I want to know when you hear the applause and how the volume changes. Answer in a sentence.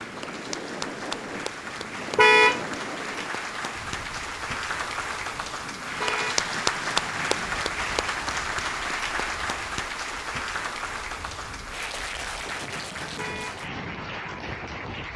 The applause can be heard from 0.0 to 15.1 s, getting louder then quieter.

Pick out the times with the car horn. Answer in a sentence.
You can hear the car horn from 2.1 to 2.6 s, from 6.0 to 6.5 s and from 13.2 to 13.7 s.